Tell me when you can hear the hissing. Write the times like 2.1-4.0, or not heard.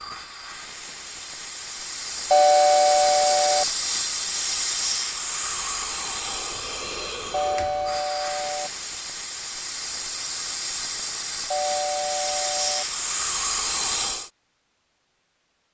0.0-14.3.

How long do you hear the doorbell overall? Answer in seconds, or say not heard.
4 s.